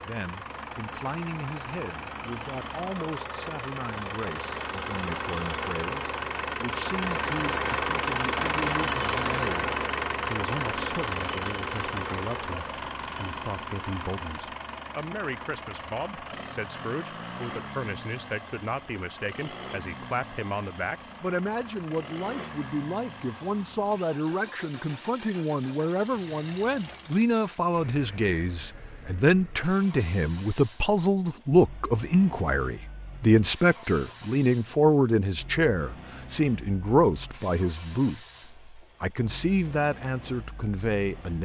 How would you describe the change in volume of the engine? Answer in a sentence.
The volume of the engine goes down.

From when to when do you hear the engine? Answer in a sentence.
The engine can be heard from 0.0 to 41.4 s.